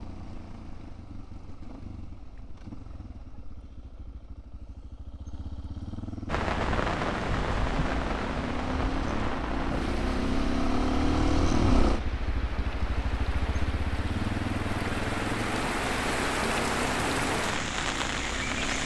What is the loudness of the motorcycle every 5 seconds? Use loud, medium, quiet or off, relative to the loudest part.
quiet, medium, loud, medium.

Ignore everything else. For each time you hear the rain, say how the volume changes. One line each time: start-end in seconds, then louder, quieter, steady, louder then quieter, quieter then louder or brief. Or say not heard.
6.2-18.8 quieter then louder.